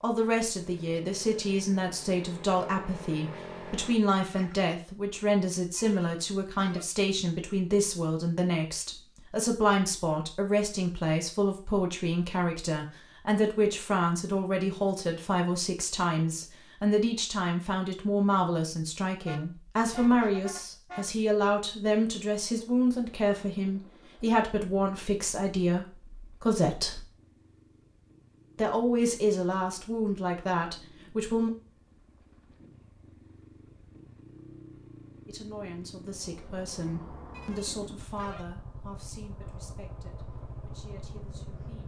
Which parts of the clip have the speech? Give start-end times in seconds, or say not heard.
0.0-27.1, 28.6-31.5, 35.2-41.8.